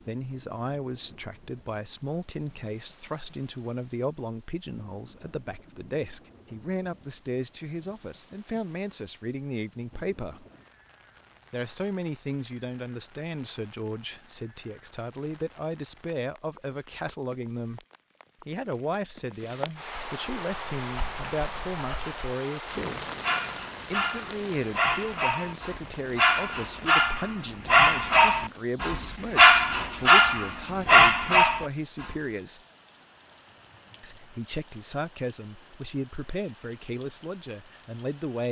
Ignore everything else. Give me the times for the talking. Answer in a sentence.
The talking can be heard from 0.1 to 10.4 s, from 11.5 to 17.8 s, from 18.4 to 23.1 s, from 23.9 to 32.6 s and from 34.0 to 38.4 s.